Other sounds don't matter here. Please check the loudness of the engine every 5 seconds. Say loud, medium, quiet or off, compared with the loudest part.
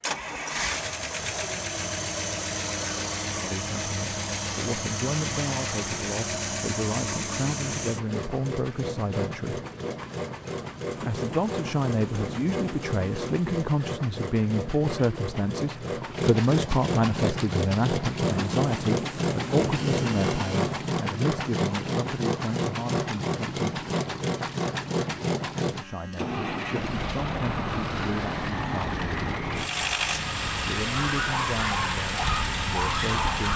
loud, loud, medium, loud, loud, loud, loud.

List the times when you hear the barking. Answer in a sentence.
The barking can be heard from 30.9 to 33.5 s.